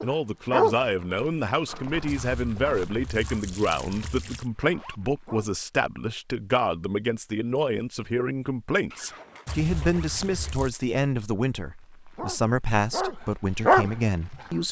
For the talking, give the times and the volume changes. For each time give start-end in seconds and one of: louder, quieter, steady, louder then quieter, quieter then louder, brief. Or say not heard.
0.0-14.6 steady.